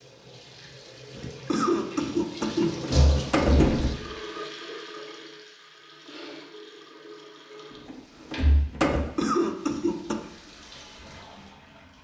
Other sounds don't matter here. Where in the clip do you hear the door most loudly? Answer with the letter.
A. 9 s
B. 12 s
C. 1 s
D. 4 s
D.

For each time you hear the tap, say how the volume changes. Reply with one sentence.
You can hear the tap from 0.0 to 12.0 s, getting louder then quieter.